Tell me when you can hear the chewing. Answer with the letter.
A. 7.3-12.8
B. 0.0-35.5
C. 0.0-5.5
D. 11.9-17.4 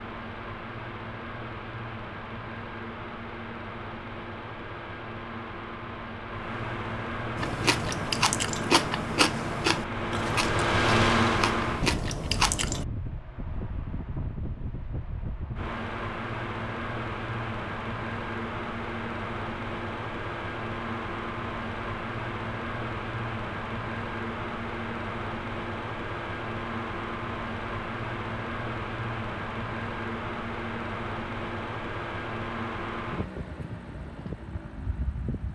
A.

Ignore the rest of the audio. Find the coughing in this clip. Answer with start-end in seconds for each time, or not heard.
not heard.